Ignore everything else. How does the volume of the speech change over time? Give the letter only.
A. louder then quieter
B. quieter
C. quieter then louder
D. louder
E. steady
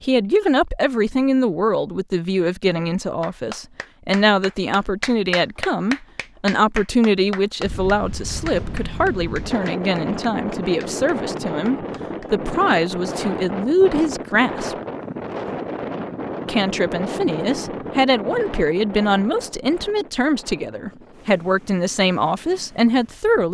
E.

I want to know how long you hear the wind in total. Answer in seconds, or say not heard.
16 s.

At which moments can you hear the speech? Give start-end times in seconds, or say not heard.
0.0-14.8, 16.4-23.5.